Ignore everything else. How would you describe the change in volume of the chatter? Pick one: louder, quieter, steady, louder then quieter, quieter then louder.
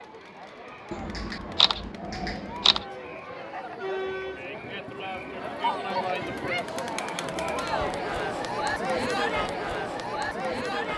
louder.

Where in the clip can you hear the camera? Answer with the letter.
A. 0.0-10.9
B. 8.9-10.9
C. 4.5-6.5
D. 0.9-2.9
D.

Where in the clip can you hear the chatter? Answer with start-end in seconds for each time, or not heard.
0.0-10.9.